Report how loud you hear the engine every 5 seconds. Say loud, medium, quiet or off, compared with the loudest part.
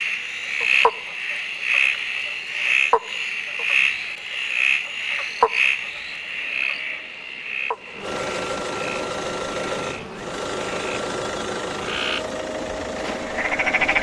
off, loud, loud.